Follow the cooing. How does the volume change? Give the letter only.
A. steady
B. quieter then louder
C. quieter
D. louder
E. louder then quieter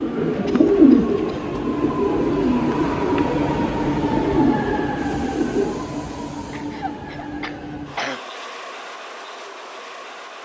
C.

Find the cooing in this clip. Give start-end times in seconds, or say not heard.
0.0-5.8.